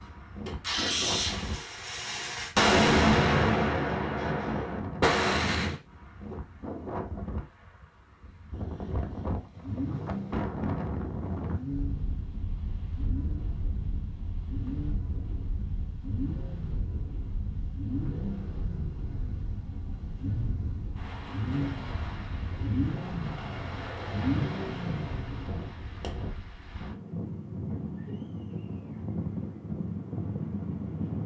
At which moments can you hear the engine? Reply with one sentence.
The engine can be heard from 0.5 to 2.5 s and from 9.6 to 25.6 s.